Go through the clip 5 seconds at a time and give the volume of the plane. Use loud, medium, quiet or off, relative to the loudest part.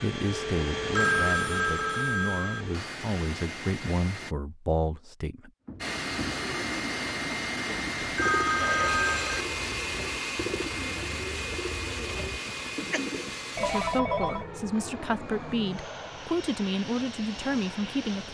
loud, loud, loud, medium.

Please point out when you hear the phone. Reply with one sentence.
The phone can be heard from 0.9 to 2.6 s, from 8.0 to 9.4 s and from 13.6 to 14.4 s.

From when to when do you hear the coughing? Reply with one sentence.
The coughing can be heard from 12.4 to 13.1 s.